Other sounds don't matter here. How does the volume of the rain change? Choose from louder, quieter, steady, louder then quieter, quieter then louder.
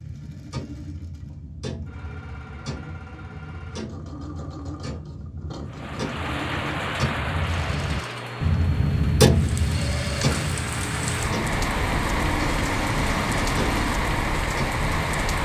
quieter then louder.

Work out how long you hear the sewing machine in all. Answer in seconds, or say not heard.
14 s.